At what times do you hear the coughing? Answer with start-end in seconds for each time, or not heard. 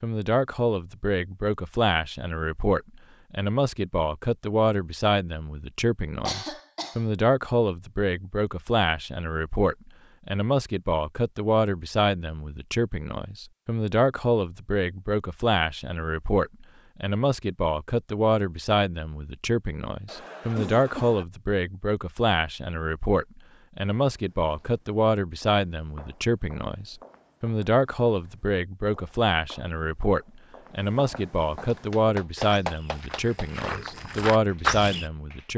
6.2-7.0, 20.1-21.2.